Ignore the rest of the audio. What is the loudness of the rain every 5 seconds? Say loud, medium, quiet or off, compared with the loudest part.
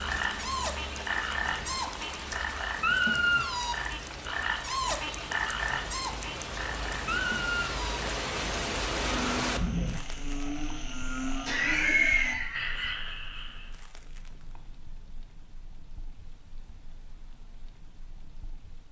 medium, loud, quiet, quiet.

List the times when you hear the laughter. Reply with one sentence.
You can hear the laughter from 11.4 to 12.9 s.